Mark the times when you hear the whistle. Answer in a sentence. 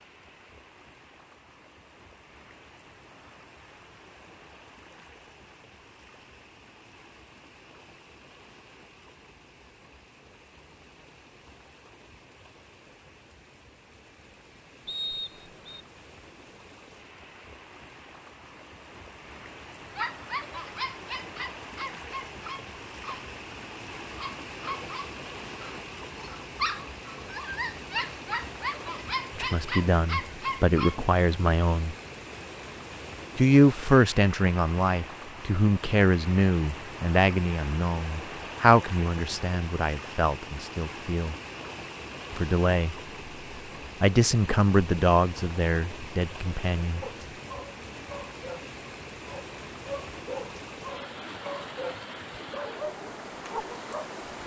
You can hear the whistle from 14.8 to 15.8 s.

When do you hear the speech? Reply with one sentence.
The speech can be heard from 29.4 to 31.9 s, from 33.4 to 41.4 s, from 42.3 to 43.0 s and from 44.0 to 47.0 s.